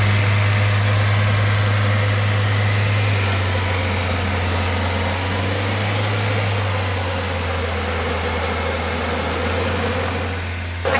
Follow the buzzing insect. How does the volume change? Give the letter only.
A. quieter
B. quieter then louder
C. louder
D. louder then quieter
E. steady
C.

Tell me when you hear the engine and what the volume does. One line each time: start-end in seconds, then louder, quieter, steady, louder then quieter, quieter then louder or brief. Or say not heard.
0.0-10.9 quieter.